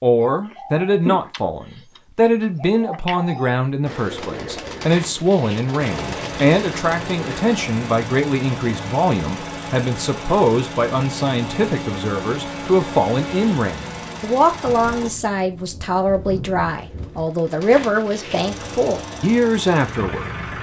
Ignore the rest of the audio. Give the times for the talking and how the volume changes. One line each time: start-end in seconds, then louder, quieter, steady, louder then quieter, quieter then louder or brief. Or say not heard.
0.0-20.4 steady.